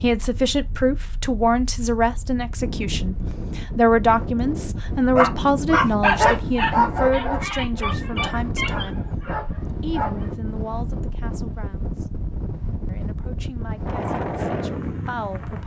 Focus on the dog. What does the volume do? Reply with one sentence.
The loudness of the dog goes down.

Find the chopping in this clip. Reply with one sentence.
You can't hear the chopping here.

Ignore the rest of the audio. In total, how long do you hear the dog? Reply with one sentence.
You can hear the dog for 5 seconds altogether.